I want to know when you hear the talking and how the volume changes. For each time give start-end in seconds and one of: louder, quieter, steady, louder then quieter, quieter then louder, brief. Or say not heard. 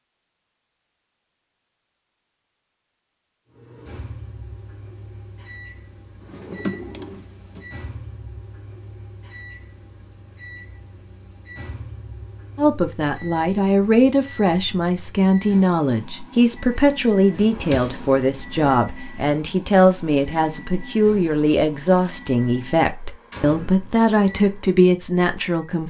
12.6-25.8 steady.